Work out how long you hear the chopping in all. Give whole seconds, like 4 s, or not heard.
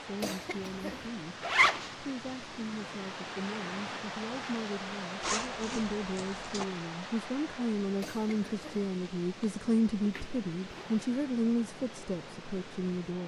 not heard.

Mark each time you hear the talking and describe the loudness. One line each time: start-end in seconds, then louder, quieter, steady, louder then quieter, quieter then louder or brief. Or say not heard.
0.0-13.2 louder.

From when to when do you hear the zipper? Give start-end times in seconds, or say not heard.
1.4-1.9, 5.2-6.7, 10.0-10.9.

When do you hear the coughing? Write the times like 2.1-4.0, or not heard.
0.2-1.1, 8.0-8.9.